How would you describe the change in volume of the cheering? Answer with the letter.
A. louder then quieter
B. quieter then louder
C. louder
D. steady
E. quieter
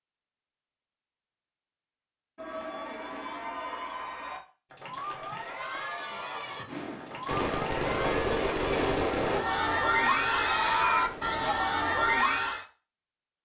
C.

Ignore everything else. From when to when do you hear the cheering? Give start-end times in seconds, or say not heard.
2.4-12.7.